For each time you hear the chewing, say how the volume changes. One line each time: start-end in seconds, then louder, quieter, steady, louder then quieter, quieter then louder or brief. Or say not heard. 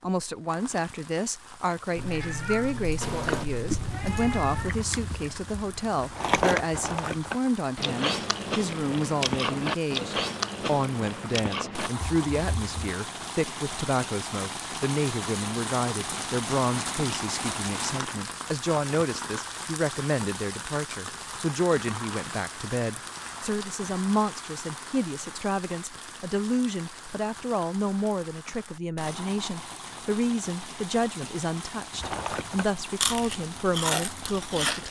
3.0-12.9 louder then quieter
31.9-34.8 brief.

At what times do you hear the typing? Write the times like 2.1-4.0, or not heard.
not heard.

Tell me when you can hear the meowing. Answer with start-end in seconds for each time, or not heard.
1.9-4.7.